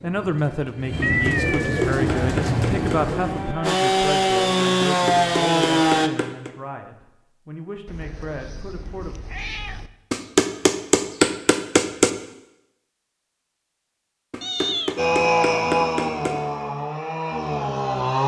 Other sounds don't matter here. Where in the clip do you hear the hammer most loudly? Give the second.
11 s.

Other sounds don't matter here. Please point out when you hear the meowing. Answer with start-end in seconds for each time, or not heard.
1.0-1.9, 7.8-9.9, 14.4-14.9.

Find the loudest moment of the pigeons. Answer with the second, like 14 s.
2 s.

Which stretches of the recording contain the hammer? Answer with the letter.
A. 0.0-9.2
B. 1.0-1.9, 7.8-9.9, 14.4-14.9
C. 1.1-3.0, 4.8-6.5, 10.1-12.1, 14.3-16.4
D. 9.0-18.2
C.